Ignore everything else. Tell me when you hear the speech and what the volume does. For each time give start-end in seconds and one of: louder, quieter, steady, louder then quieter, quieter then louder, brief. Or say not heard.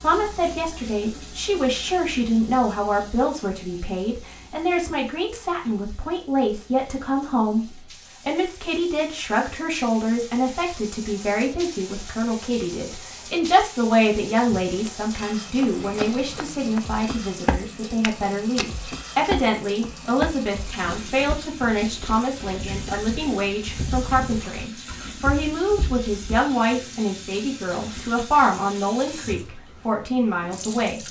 0.0-31.0 steady.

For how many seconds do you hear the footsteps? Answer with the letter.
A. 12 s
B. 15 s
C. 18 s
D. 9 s
A.